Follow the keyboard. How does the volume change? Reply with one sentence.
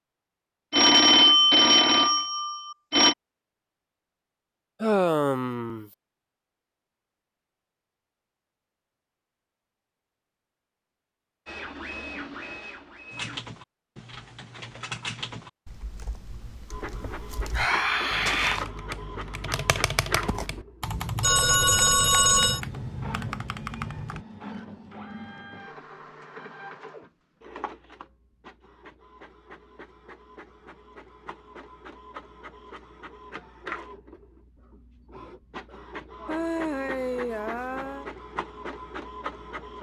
The volume of the keyboard goes down, then up.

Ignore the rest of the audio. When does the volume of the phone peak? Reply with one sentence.
The loudest moment of the phone is at 1 second.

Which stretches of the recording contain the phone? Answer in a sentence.
The phone can be heard from 0.7 to 3.1 s and from 21.2 to 22.6 s.